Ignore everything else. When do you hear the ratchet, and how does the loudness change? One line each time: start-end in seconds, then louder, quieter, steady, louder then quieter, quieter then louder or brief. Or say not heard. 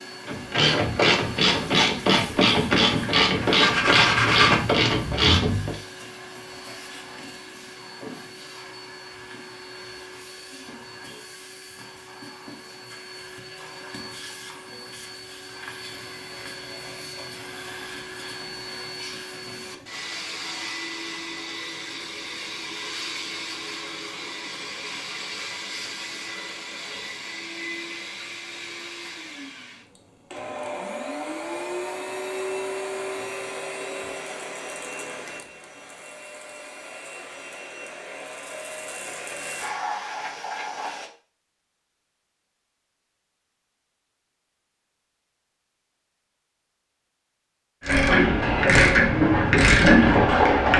0.2-5.8 steady
47.8-50.7 brief.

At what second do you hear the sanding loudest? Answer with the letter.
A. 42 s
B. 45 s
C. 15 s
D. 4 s
D.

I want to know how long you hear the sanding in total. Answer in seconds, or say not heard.
2 s.